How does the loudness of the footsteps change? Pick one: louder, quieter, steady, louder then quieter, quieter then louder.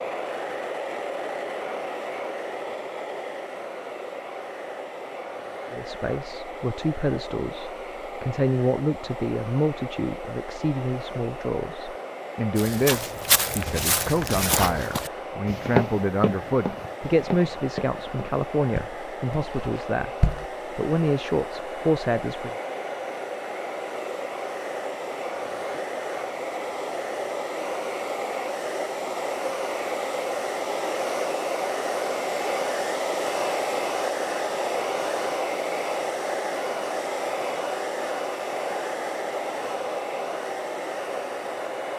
quieter.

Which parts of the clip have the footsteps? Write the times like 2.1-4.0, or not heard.
12.6-20.4.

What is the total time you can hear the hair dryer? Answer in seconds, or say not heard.
42 s.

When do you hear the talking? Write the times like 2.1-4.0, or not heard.
5.7-22.6.